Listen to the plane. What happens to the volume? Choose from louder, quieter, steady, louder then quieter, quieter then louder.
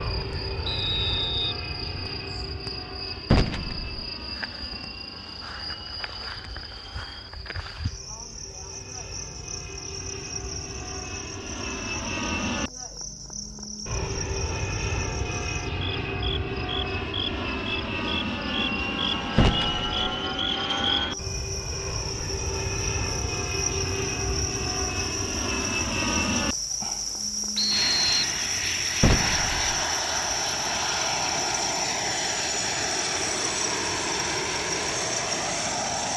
louder.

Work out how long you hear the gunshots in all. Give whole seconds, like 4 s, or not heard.
2 s.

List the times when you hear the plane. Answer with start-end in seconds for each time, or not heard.
0.0-36.1.